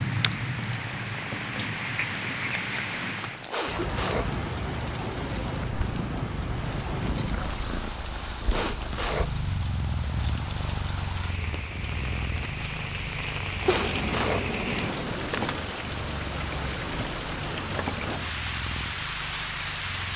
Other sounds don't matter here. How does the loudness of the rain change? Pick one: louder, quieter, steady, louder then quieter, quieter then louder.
quieter then louder.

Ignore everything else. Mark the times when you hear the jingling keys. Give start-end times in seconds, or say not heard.
5.7-7.8, 13.7-15.0.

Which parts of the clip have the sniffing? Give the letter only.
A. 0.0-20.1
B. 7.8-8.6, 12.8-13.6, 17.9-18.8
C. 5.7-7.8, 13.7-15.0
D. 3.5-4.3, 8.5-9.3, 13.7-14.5
D.